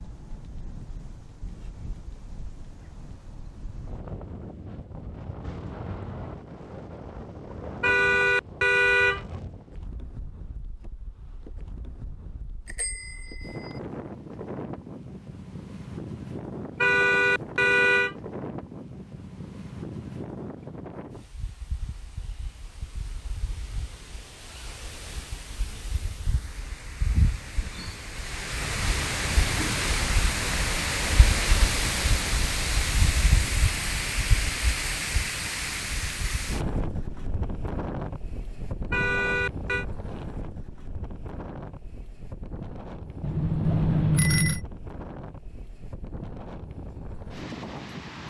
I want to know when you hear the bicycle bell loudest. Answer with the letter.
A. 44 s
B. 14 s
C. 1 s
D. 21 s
A.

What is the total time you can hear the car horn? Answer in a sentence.
The car horn can be heard for 4 seconds in total.